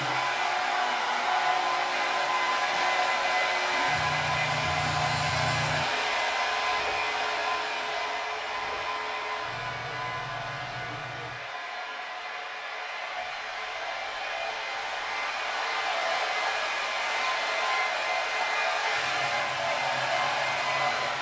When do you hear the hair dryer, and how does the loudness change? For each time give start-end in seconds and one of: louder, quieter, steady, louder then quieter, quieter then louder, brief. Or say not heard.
0.0-21.1 quieter then louder.